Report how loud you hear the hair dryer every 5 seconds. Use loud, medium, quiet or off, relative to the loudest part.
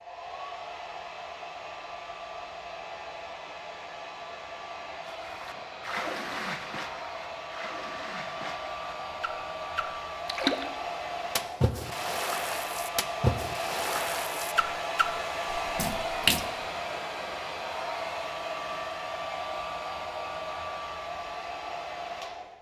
medium, medium, loud, loud, loud.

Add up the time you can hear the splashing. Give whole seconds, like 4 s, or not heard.
11 s.